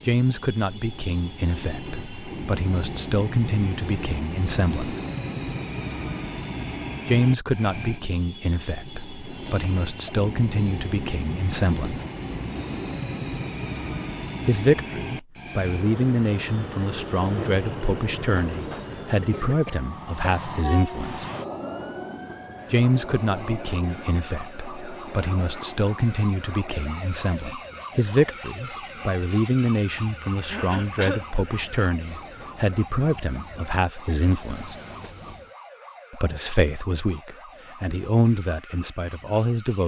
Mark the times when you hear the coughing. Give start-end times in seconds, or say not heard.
9.4-10.1, 19.2-20.4, 30.4-31.2.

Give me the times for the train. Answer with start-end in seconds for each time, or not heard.
0.0-35.5.